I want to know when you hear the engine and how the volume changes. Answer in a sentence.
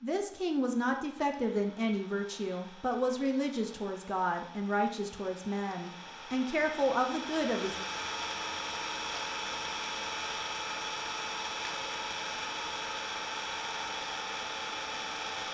The engine can be heard from 0.0 to 15.5 s, getting louder.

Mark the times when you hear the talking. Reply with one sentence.
The talking can be heard from 0.0 to 7.8 s.